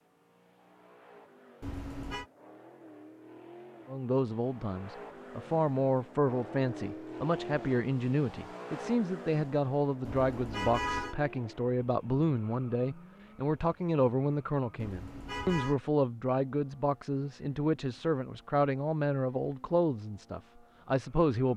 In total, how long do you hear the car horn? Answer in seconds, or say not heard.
3 s.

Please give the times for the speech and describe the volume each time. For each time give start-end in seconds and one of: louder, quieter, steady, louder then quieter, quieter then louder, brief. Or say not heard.
3.9-21.5 steady.